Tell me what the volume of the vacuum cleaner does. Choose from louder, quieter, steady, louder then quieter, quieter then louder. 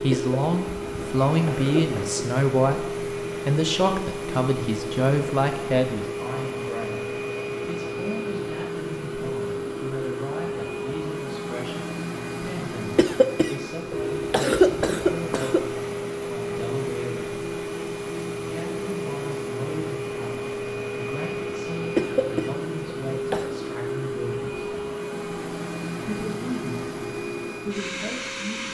steady.